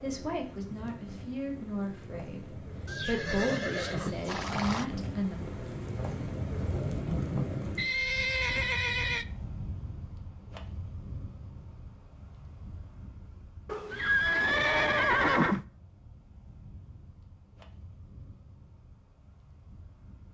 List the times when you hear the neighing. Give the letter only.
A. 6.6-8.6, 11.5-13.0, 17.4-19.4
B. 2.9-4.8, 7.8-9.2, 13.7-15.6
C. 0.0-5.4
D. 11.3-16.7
B.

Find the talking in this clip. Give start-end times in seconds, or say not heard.
0.0-5.4.